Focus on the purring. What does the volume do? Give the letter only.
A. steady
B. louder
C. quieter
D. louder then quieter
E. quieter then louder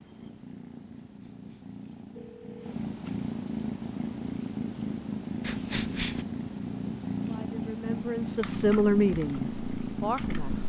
B.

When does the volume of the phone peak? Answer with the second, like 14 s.
6 s.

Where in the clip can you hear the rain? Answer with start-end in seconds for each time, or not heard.
not heard.